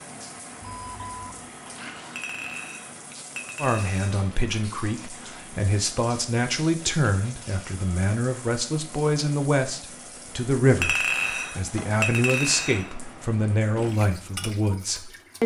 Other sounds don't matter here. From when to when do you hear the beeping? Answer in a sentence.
The beeping can be heard from 0.6 to 1.4 s.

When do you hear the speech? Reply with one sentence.
You can hear the speech from 3.5 to 15.4 s.